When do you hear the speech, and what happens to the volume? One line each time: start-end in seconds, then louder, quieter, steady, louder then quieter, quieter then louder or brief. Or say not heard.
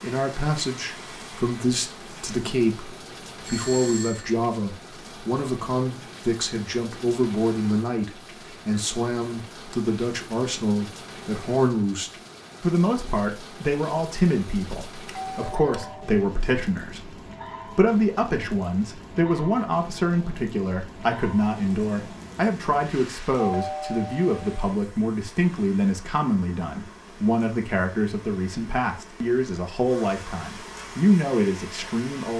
0.0-32.3 steady.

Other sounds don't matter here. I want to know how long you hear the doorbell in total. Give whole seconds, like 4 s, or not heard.
3 s.